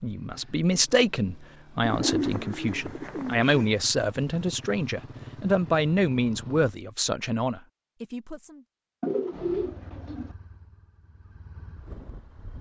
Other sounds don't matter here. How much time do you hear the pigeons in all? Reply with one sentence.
You can hear the pigeons for 3 seconds altogether.